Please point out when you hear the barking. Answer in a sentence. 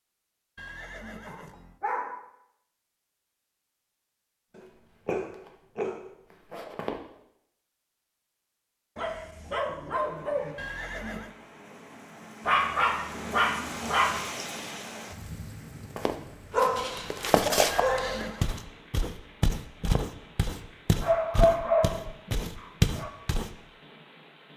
You can hear the barking from 1.2 to 2.2 s, from 4.5 to 6.0 s, from 8.9 to 10.6 s, from 12.4 to 14.2 s, from 16.5 to 18.6 s and from 21.0 to 23.1 s.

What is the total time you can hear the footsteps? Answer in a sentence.
The footsteps can be heard for 10 seconds in total.